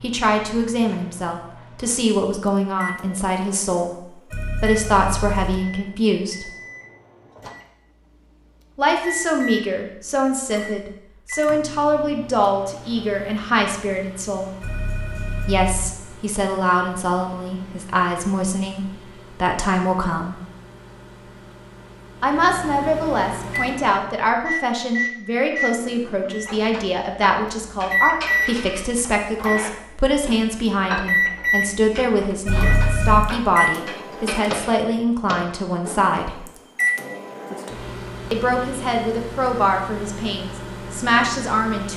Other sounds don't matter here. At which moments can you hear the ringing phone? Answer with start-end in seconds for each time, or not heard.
4.3-5.6, 14.6-15.9, 32.5-33.4.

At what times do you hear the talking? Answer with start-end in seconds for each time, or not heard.
0.0-4.0, 4.6-6.5, 8.8-14.5, 15.4-20.4, 22.2-36.5, 38.3-41.9.